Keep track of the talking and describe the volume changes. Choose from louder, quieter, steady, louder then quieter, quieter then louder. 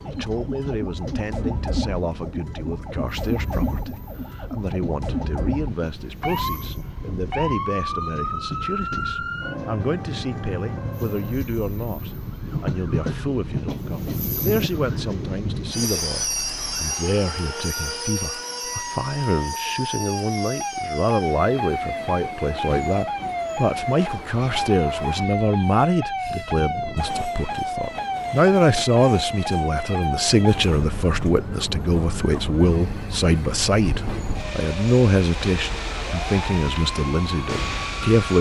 louder.